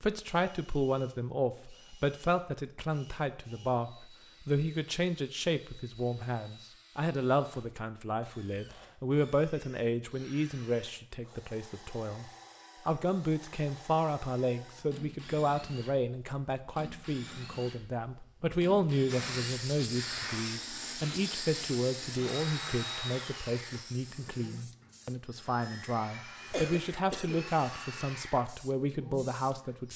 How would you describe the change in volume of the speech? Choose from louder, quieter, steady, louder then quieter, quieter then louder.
steady.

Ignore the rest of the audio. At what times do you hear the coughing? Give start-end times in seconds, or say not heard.
26.5-27.5.